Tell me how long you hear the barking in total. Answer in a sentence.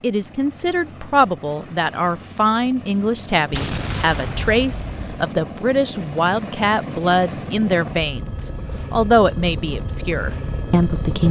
You can't hear the barking here.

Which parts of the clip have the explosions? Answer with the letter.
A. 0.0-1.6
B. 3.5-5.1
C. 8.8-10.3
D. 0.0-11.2
B.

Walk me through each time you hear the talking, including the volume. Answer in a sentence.
You can hear the talking from 0.0 to 11.2 s, at a steady volume.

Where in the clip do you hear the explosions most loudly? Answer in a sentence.
The volume of the explosions peaks at 4 seconds.